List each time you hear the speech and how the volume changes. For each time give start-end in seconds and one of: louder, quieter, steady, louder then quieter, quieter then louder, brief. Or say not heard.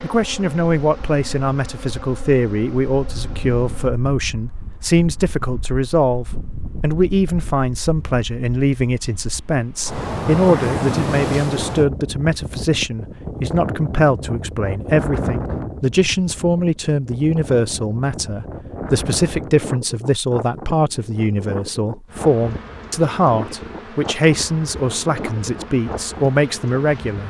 0.0-27.2 steady.